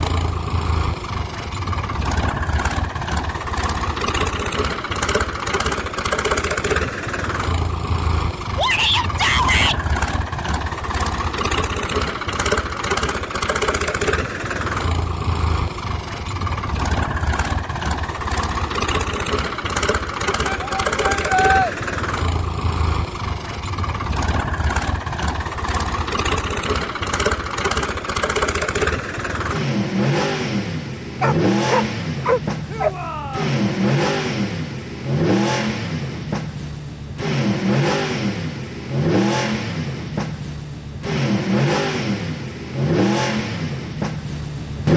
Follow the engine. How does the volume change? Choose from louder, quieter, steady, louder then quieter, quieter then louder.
steady.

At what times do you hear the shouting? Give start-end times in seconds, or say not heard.
8.6-9.8, 20.4-21.7, 32.6-33.5.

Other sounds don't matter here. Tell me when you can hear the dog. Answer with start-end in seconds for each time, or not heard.
31.2-32.9.